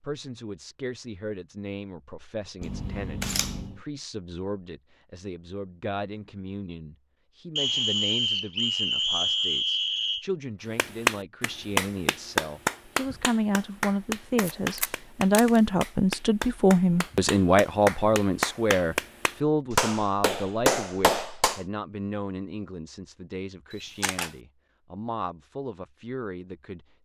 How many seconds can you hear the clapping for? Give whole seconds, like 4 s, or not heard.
11 s.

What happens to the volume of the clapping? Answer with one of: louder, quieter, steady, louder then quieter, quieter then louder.
quieter then louder.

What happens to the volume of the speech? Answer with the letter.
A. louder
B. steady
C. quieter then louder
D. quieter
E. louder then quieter
E.